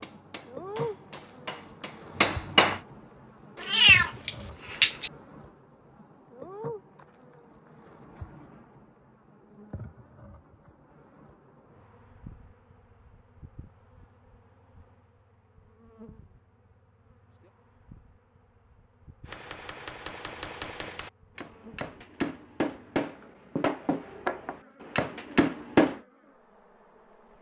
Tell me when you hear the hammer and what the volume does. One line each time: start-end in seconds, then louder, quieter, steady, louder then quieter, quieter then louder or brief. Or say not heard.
0.0-2.8 brief
19.2-26.0 louder.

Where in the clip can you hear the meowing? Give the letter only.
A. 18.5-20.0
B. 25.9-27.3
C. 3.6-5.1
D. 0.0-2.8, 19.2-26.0
C.